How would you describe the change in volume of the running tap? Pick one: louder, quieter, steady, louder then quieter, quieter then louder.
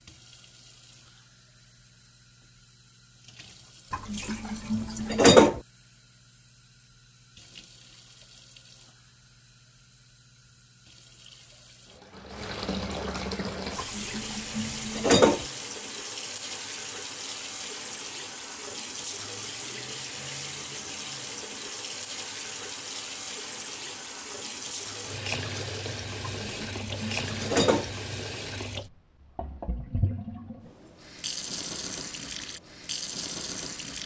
louder.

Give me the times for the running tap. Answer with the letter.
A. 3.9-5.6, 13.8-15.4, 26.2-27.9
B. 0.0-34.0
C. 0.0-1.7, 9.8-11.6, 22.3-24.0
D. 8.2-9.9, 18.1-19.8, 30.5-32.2
B.